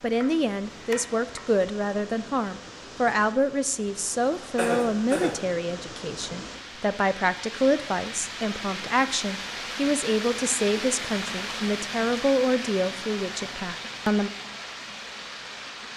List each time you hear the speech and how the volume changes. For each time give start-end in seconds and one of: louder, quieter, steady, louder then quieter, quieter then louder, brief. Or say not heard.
0.0-14.3 steady.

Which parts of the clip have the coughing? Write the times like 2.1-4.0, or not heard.
4.5-5.4.